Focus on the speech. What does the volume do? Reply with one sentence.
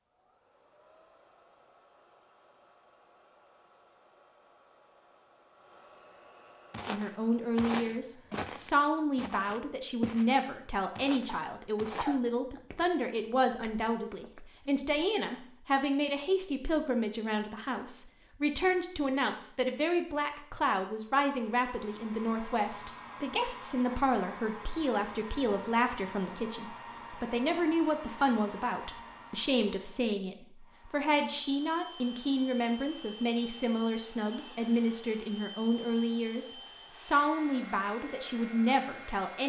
The volume of the speech stays about the same.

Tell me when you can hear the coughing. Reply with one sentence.
The coughing can be heard from 11.2 to 12.6 s.